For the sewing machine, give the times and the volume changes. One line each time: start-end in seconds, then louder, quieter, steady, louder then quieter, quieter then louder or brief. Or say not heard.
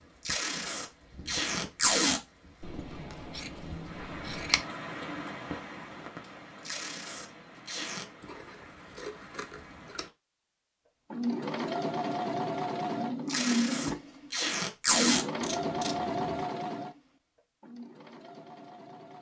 11.1-19.1 quieter.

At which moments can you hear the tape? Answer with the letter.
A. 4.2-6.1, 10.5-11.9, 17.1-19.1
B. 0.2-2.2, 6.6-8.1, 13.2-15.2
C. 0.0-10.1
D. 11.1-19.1
B.